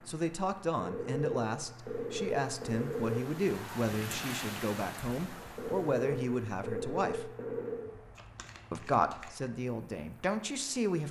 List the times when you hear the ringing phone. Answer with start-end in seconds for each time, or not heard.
0.8-3.2, 5.5-7.9.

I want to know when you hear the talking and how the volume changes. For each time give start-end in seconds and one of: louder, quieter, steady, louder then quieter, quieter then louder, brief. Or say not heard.
0.1-7.3 steady
8.7-11.0 brief.